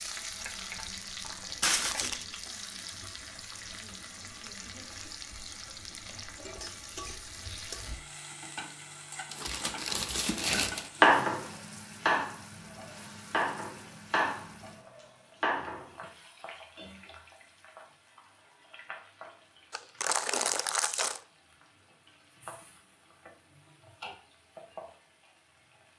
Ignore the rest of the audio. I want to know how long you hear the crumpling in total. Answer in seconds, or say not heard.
4 s.